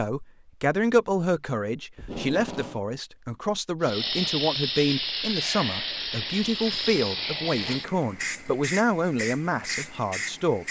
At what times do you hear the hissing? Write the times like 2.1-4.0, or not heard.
3.8-10.6.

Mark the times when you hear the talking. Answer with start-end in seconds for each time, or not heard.
0.0-10.6.